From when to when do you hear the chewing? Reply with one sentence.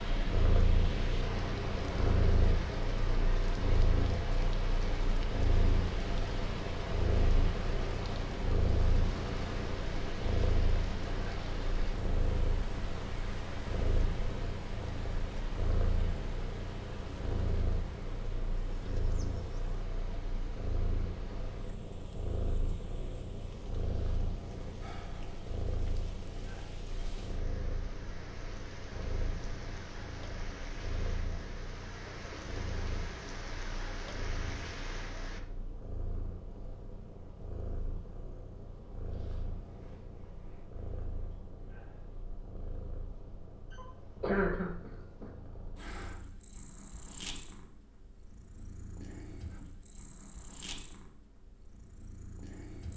You can't hear the chewing here.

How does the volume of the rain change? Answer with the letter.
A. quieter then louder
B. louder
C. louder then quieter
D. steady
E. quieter
A.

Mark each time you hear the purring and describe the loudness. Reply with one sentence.
The purring can be heard from 0.0 to 52.9 s, getting quieter.